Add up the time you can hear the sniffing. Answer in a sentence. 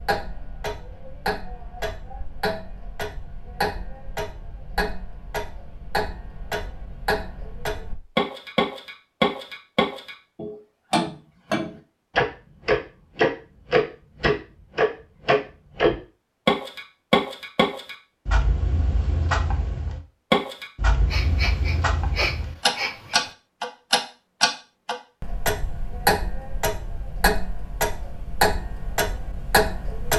You can hear the sniffing for 2 seconds altogether.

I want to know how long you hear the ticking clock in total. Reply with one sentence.
The ticking clock can be heard for 30 seconds in total.